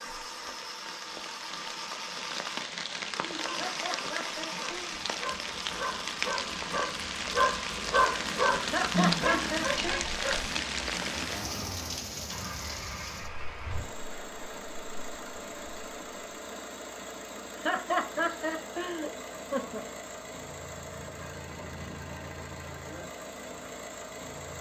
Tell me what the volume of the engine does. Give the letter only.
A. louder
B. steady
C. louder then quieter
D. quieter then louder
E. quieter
B.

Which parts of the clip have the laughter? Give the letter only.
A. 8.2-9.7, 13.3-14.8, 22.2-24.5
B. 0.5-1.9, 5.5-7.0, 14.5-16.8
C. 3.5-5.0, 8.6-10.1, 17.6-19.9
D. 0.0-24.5
C.